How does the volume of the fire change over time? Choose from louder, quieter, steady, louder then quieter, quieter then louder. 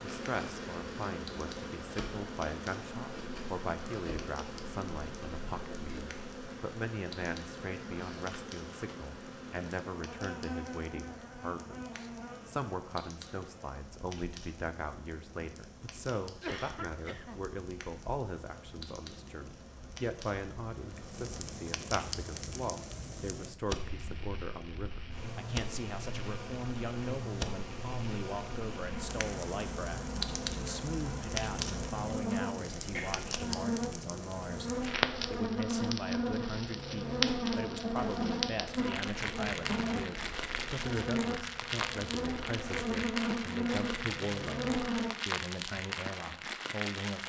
louder.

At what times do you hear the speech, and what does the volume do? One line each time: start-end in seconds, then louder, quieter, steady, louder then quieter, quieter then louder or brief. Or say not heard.
0.1-47.2 steady.